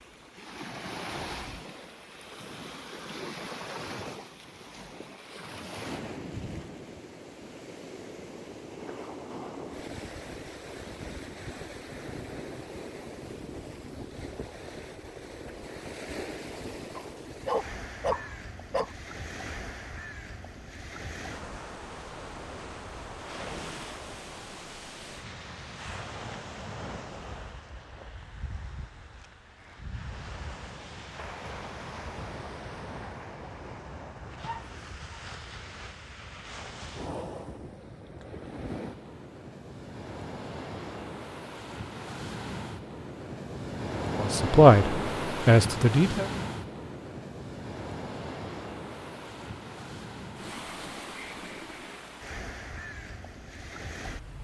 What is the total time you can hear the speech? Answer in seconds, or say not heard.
2 s.